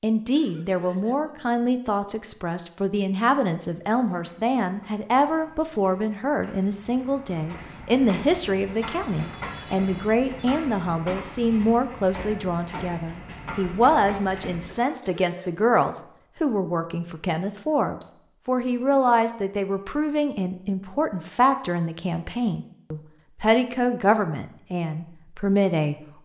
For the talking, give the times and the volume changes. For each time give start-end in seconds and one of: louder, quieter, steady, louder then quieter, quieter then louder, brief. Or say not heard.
0.0-25.9 steady.